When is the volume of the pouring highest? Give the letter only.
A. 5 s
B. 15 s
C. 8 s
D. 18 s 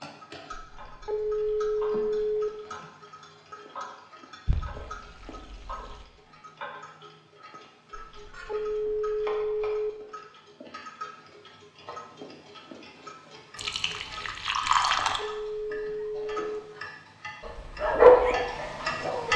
B.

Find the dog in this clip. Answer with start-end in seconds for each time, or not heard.
17.4-19.3.